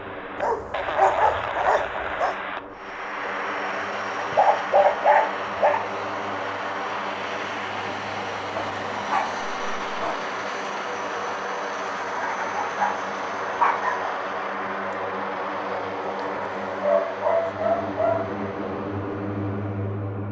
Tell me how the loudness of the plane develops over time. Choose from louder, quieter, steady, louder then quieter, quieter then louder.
steady.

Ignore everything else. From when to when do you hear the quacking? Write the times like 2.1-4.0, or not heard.
not heard.